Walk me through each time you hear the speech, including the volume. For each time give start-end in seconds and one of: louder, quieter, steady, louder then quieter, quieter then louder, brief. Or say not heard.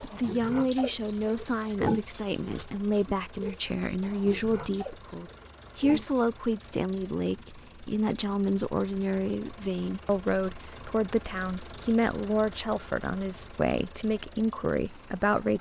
0.0-15.5 steady.